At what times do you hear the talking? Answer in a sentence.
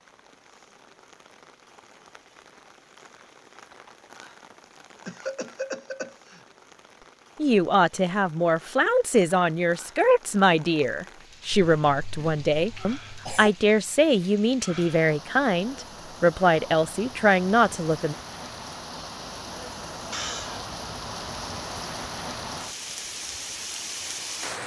The talking can be heard from 7.3 to 18.1 s.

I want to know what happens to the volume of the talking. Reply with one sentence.
The volume of the talking stays about the same.